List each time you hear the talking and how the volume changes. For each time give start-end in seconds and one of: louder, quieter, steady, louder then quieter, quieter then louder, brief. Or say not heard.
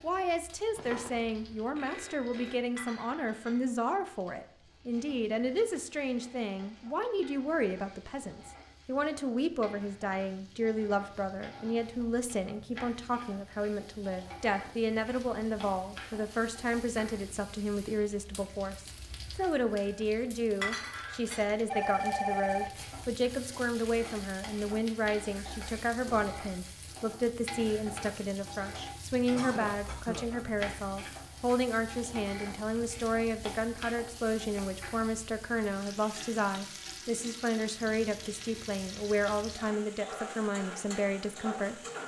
0.0-41.9 steady.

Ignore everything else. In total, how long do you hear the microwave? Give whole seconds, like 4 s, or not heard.
not heard.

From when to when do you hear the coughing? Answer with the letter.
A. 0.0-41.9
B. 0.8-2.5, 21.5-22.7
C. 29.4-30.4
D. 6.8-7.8
C.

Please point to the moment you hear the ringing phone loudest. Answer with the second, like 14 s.
22 s.